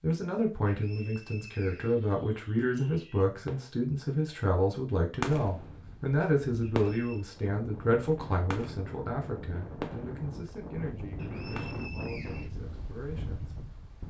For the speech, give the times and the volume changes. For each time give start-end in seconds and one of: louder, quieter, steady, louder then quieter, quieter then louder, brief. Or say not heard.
0.0-13.6 quieter.